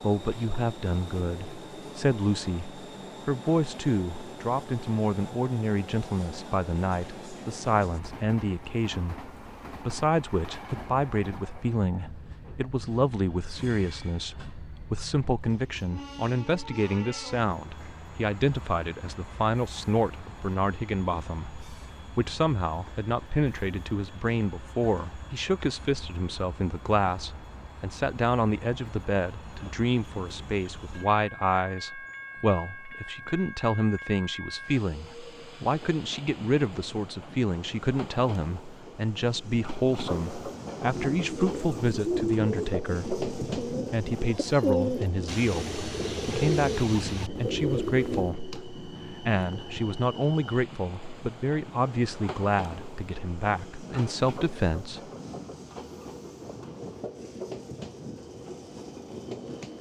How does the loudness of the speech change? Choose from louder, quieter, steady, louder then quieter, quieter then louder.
steady.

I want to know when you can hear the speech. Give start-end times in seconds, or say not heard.
0.0-55.1.